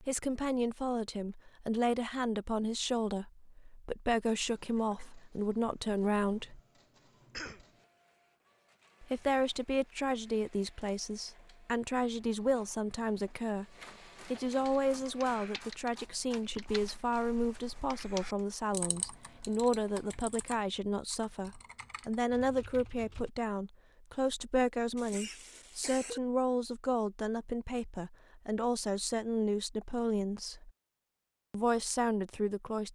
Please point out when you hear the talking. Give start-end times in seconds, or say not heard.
0.0-6.6, 9.0-13.7, 14.2-30.7, 31.5-32.9.